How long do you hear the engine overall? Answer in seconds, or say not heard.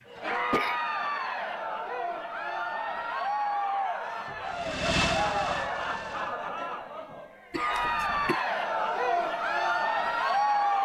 2 s.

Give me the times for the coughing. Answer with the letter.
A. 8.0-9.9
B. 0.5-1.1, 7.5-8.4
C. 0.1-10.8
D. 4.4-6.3
B.